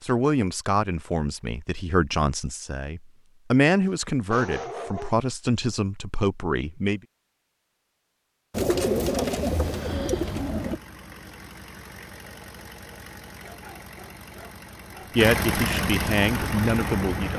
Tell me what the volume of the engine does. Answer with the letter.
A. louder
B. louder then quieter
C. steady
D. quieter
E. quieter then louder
A.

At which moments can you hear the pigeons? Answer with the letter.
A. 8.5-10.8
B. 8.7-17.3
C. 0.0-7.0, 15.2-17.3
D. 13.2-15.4
A.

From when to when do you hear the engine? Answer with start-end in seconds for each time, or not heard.
8.7-17.3.